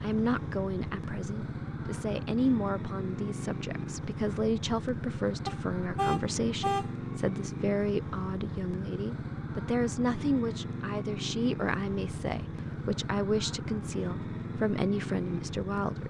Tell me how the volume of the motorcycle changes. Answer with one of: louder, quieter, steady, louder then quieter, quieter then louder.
steady.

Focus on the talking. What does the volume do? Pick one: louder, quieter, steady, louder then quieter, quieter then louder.
steady.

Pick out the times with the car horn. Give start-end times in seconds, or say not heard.
5.5-6.9.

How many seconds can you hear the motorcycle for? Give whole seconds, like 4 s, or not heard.
16 s.